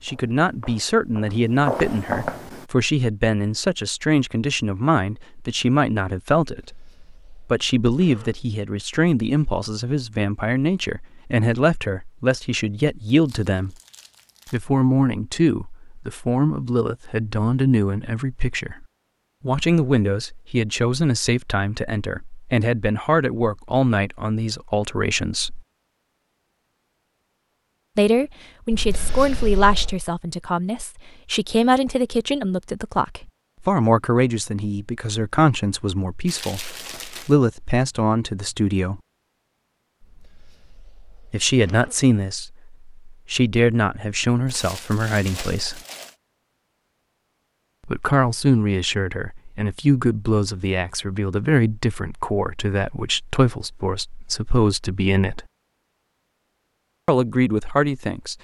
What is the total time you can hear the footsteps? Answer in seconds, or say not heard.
3 s.